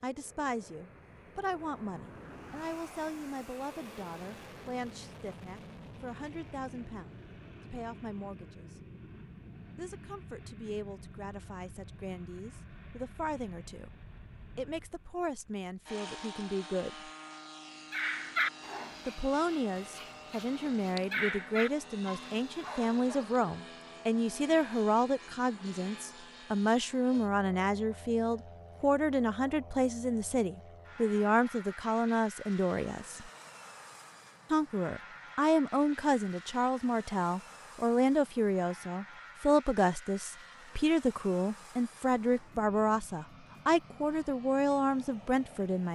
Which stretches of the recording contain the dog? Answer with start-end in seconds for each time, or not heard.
17.9-23.4.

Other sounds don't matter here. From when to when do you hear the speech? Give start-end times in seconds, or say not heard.
0.0-8.8, 9.8-17.1, 19.1-33.3, 34.5-45.9.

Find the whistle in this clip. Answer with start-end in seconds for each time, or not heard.
not heard.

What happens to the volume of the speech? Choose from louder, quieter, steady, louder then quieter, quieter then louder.
louder.